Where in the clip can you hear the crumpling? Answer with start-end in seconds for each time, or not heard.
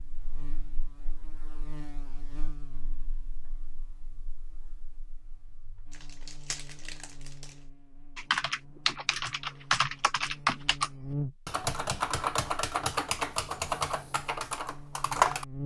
5.9-7.6.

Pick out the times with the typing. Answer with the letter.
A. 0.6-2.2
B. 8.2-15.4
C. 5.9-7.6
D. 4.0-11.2
B.